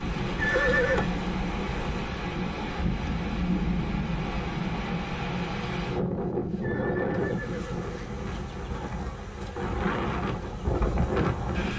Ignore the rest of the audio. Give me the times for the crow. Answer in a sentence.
The crow can't be heard in this clip.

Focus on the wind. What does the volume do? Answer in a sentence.
The loudness of the wind stays about the same.